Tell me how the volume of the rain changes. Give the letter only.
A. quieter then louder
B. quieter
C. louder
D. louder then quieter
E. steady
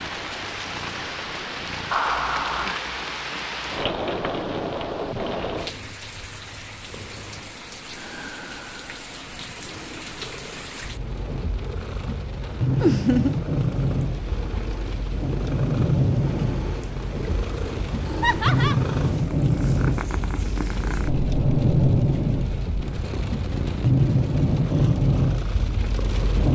A.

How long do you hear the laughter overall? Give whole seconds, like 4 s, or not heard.
2 s.